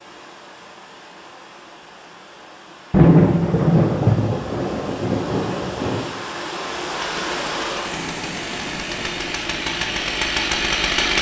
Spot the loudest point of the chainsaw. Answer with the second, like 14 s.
11 s.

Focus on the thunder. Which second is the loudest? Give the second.
3 s.